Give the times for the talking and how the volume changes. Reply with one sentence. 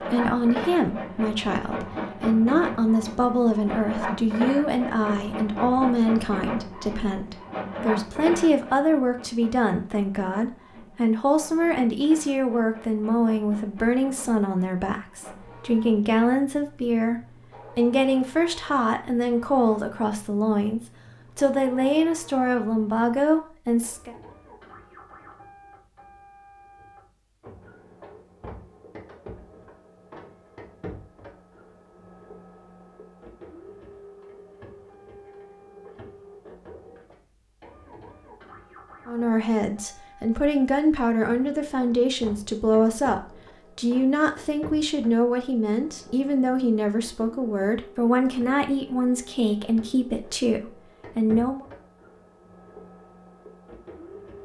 The talking can be heard from 0.0 to 24.1 s, at a steady volume; and from 39.0 to 51.6 s, at a steady volume.